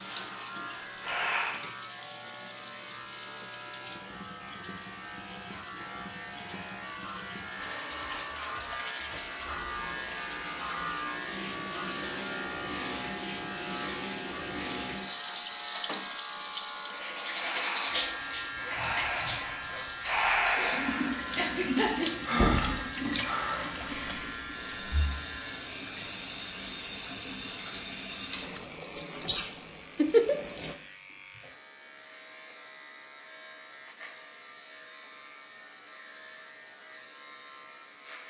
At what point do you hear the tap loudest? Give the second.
30 s.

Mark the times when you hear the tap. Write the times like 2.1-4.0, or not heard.
0.0-30.8.